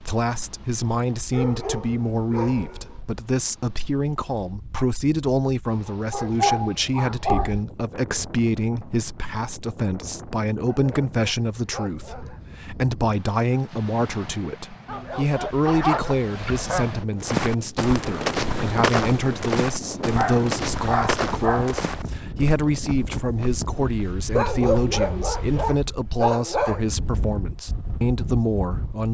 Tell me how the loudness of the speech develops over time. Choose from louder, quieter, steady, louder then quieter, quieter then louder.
steady.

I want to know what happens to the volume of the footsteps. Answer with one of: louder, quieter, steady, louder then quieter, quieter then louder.
quieter.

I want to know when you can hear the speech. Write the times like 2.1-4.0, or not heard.
0.0-29.1.